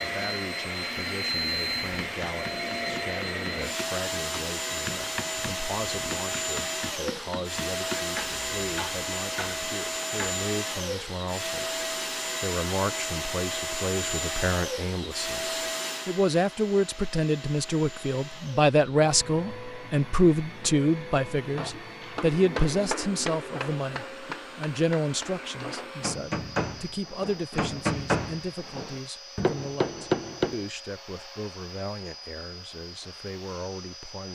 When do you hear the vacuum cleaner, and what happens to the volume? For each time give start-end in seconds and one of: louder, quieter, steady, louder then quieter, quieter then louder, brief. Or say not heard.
0.0-34.3 quieter.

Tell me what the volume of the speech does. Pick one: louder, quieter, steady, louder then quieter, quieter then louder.
louder then quieter.